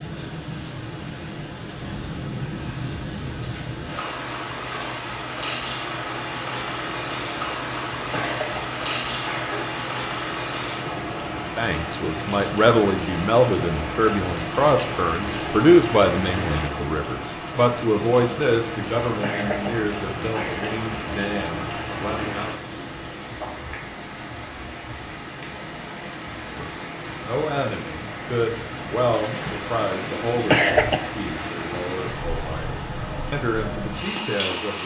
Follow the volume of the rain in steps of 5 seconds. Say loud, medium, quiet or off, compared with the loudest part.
loud, loud, loud, loud, loud, medium, loud.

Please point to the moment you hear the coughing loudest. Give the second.
31 s.